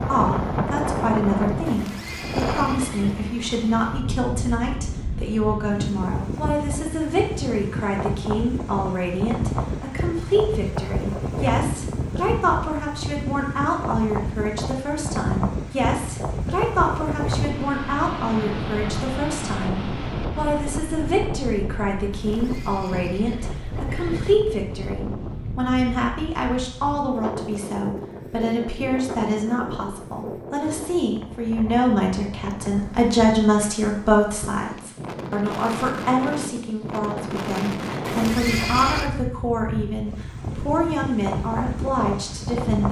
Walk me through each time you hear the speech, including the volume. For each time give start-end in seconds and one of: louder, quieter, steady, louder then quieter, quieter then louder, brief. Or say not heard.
0.1-42.8 steady.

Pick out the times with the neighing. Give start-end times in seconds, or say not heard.
1.6-3.4, 22.1-24.4, 38.0-39.1.